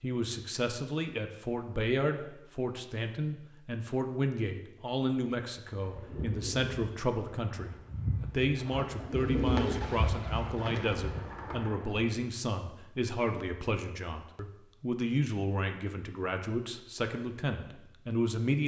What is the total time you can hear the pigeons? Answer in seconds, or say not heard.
6 s.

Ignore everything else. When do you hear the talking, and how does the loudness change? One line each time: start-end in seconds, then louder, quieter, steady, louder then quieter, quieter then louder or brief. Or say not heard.
0.0-18.6 steady.